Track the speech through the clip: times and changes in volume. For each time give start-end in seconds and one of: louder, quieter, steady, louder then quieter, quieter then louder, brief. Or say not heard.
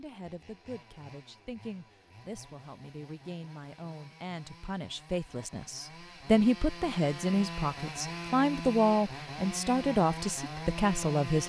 0.0-11.4 louder.